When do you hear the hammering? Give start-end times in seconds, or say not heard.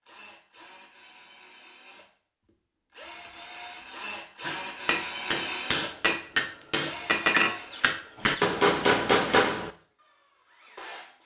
4.4-9.7.